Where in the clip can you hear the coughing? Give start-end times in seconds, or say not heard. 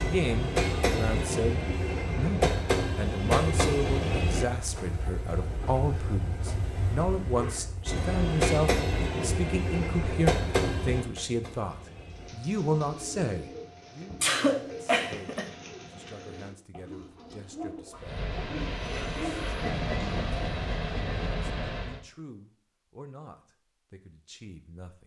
14.2-15.5.